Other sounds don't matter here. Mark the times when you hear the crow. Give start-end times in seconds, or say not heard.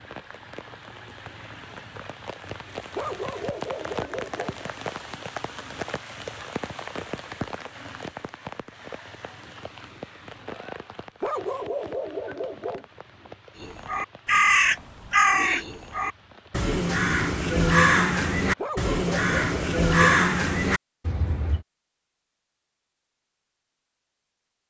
13.6-21.6.